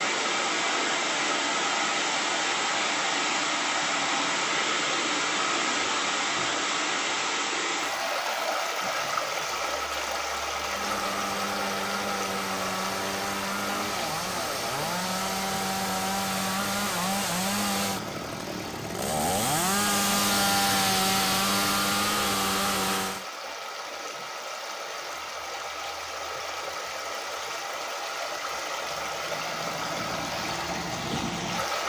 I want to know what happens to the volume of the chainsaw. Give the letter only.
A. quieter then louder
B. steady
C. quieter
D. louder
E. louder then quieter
D.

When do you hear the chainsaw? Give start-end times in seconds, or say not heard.
10.6-23.2.